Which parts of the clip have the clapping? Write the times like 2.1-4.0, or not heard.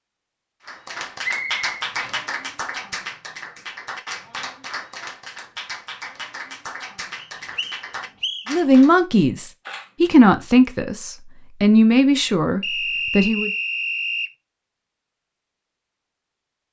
0.7-8.9.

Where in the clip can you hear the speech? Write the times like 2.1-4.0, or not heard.
8.5-13.5.